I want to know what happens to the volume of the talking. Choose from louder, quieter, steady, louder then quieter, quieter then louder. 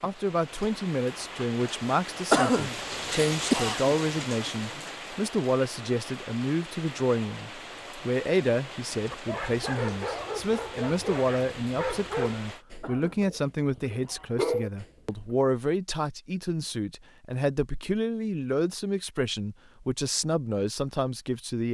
steady.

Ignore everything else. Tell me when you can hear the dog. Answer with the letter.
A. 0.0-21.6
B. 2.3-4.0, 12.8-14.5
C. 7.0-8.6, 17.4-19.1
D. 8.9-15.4
D.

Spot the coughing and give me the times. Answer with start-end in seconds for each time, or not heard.
2.3-4.0, 12.8-14.5.